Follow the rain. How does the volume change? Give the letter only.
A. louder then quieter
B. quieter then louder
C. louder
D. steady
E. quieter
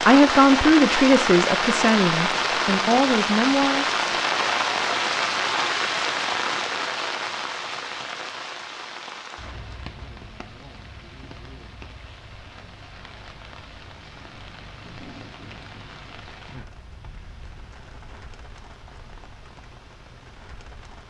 E.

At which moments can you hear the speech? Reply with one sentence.
The speech can be heard from 0.0 to 4.0 s.